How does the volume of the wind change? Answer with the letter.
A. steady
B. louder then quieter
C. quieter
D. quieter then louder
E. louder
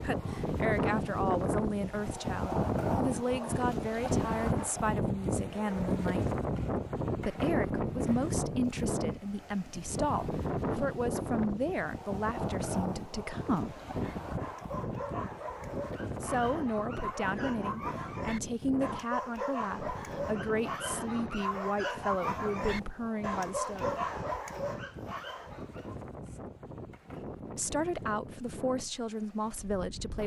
C.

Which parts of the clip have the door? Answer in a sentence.
You can't hear the door here.